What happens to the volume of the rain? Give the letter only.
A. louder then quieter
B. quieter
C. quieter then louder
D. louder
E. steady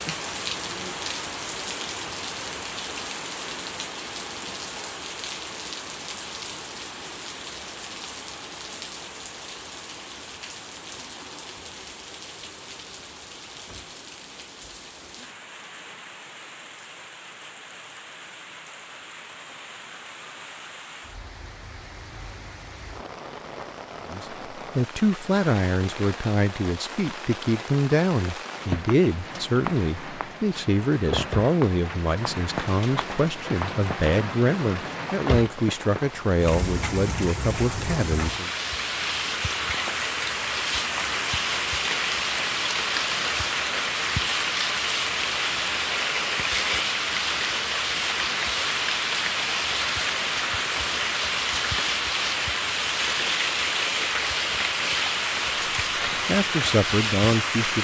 C.